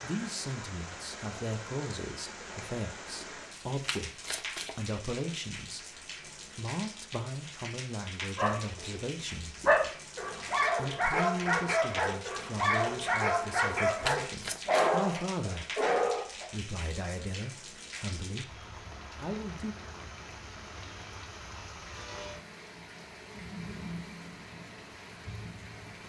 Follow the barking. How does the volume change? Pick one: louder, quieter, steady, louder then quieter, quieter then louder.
steady.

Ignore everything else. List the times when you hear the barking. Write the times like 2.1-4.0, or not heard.
8.3-16.4.